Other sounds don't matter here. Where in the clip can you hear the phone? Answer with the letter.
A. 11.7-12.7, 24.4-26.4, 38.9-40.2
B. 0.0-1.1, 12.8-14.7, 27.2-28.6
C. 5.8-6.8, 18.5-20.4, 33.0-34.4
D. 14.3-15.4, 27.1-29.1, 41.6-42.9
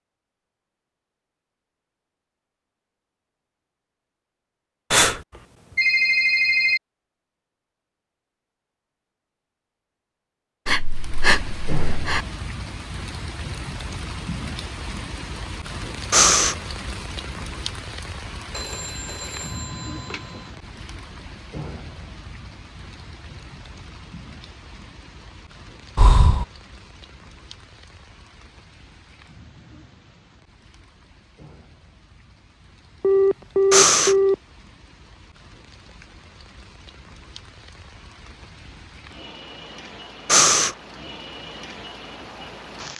C.